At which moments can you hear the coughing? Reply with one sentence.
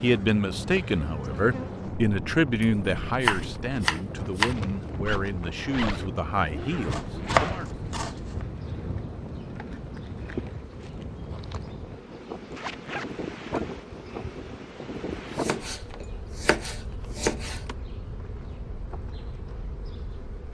The coughing can't be heard in this clip.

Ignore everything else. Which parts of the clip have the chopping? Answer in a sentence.
You can hear the chopping from 2.6 to 4.5 s, from 6.9 to 8.4 s and from 15.3 to 17.6 s.